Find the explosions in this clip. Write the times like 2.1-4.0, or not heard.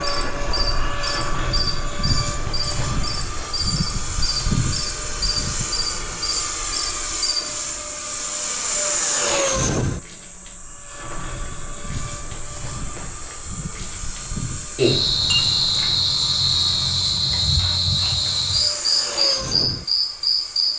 not heard.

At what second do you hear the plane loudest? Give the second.
9 s.